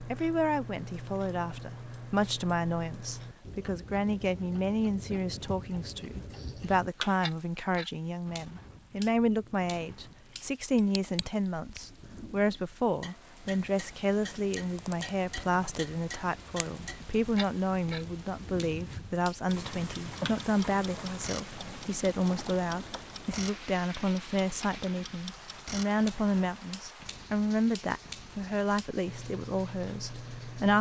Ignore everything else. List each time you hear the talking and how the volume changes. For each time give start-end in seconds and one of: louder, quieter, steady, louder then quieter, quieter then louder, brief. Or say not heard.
0.1-30.7 steady.